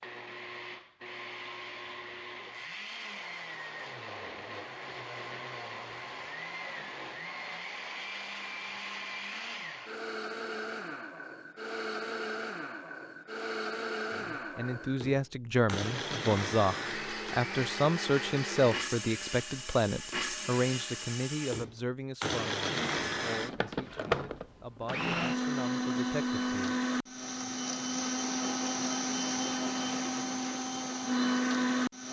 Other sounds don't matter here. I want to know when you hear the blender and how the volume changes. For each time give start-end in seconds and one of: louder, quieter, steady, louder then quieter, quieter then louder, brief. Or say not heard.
0.0-32.0 louder.